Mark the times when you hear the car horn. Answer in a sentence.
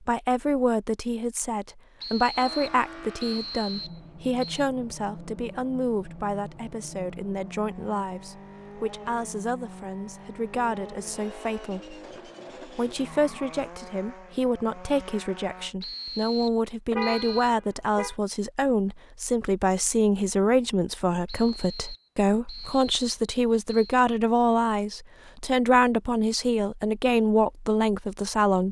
The car horn can be heard from 16.9 to 18.1 s.